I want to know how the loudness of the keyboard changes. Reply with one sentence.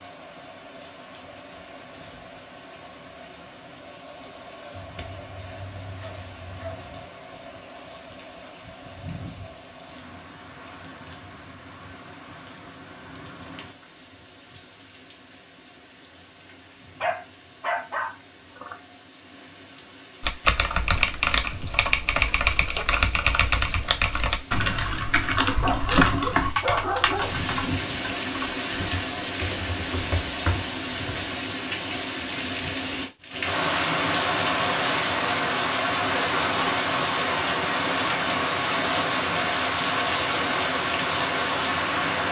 The loudness of the keyboard goes down.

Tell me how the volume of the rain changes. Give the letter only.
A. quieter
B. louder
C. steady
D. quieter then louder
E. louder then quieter
B.